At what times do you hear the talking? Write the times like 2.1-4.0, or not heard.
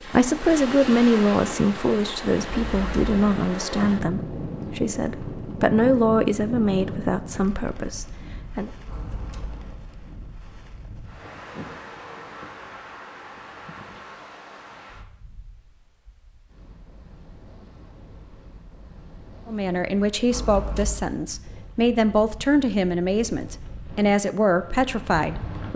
0.0-8.7, 19.4-25.7.